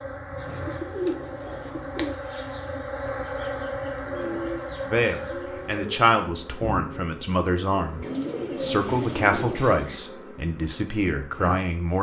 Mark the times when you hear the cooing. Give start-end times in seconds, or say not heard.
0.5-2.1, 4.0-6.0, 8.0-10.0.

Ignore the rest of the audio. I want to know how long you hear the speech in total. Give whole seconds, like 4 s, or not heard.
7 s.